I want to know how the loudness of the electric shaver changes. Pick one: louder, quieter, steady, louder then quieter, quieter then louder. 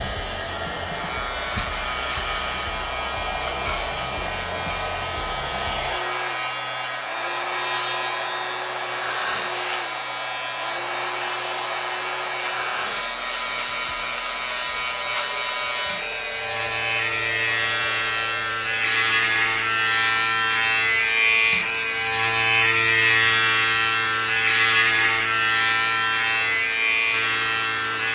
louder.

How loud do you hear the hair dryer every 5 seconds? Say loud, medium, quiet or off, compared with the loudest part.
loud, loud, loud, medium, medium, medium.